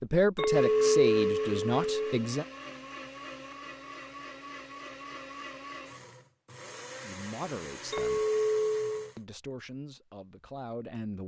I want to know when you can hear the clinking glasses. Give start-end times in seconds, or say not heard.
0.3-2.1, 7.9-9.1.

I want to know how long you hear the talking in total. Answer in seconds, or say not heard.
6 s.